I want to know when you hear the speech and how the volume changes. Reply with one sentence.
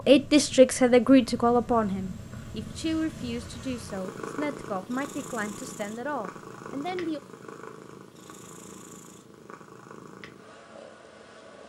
The speech can be heard from 0.1 to 7.2 s, getting quieter.